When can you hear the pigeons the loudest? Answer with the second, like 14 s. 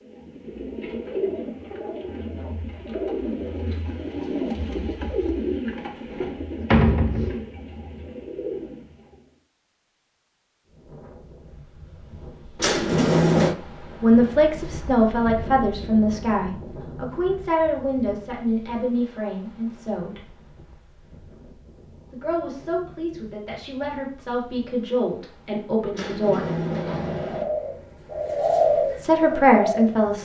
29 s.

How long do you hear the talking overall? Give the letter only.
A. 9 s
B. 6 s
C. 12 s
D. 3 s
C.